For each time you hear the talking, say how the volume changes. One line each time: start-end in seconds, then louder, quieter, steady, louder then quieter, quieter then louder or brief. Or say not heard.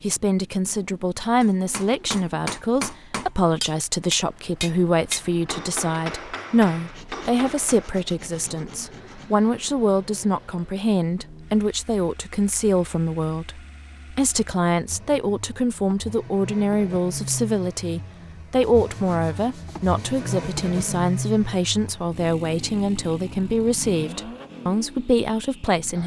0.0-26.0 steady.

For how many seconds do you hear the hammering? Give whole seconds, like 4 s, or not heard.
7 s.